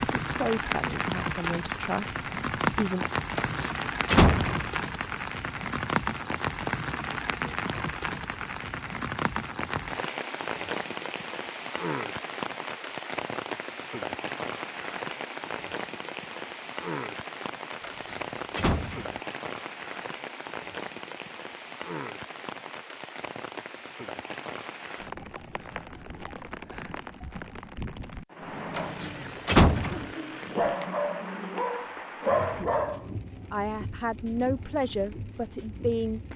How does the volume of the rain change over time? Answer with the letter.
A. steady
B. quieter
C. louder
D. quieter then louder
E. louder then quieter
B.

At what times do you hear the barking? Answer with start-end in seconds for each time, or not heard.
28.7-33.0.